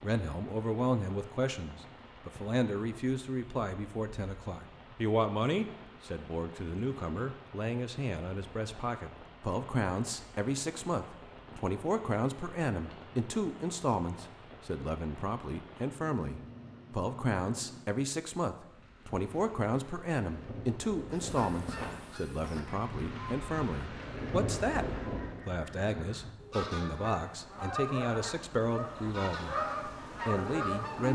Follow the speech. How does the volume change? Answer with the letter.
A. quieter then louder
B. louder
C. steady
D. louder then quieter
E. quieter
C.